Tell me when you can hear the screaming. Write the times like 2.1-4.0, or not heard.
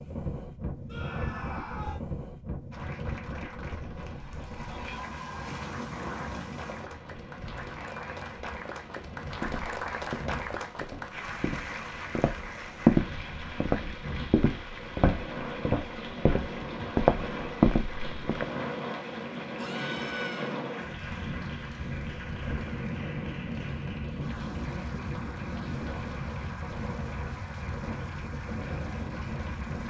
0.8-2.0, 19.6-20.6.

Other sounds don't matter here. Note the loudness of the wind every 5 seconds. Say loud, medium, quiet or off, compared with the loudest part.
loud, medium, medium, loud, loud, loud.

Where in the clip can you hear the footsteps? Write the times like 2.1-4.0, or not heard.
9.4-18.4.